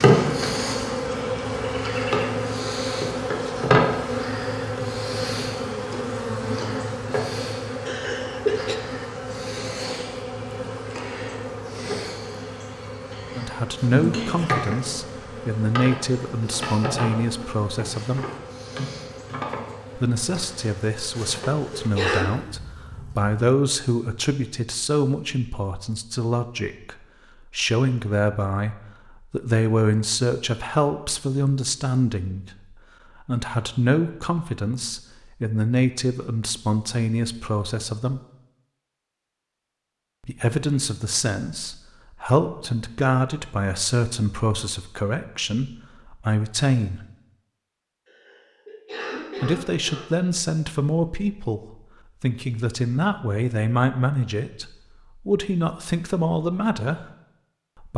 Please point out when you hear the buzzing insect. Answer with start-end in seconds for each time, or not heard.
0.0-23.4.